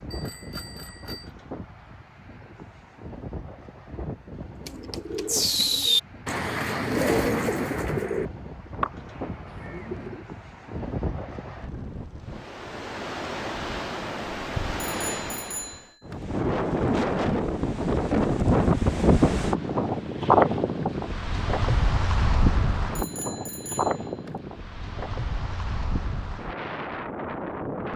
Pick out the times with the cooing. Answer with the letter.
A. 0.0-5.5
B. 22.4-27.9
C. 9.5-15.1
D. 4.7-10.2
D.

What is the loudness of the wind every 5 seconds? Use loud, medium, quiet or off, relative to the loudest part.
quiet, quiet, medium, loud, loud, medium.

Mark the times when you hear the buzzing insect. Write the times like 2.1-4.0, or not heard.
not heard.